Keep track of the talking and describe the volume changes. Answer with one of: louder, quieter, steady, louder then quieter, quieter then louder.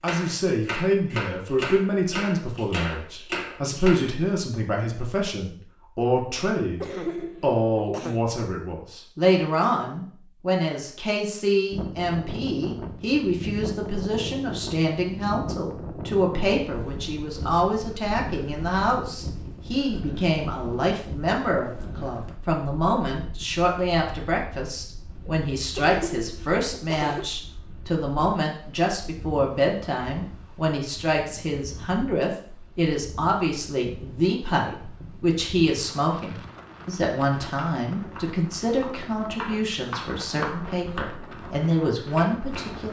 steady.